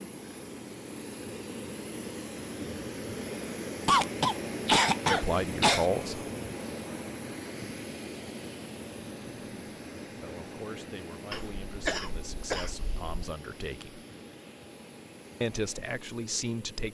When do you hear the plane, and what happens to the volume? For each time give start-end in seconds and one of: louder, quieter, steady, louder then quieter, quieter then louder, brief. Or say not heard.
0.0-16.8 quieter.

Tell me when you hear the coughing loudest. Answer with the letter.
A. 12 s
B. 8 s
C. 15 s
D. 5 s
D.